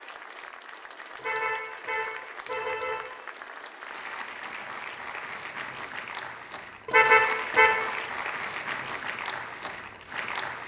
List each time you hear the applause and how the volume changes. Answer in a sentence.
You can hear the applause from 0.0 to 10.6 s, getting louder.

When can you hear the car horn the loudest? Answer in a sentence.
The loudest moment of the car horn is at 7 seconds.